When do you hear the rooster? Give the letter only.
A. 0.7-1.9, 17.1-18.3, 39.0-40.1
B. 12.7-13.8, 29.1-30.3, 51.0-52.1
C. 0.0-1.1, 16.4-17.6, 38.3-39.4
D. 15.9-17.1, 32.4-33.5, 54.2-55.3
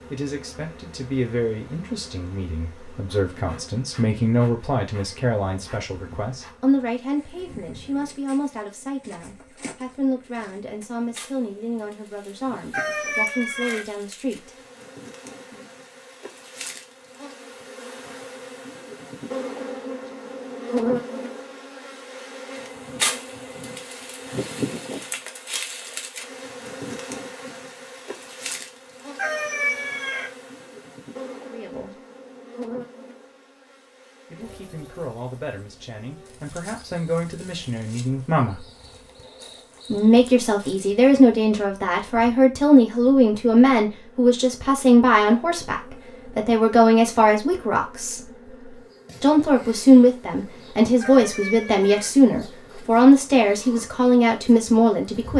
B.